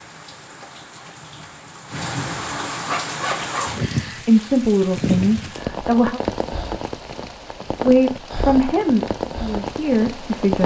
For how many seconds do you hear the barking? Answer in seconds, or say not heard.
2 s.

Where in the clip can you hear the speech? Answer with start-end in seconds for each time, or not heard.
4.1-6.2, 7.8-10.6.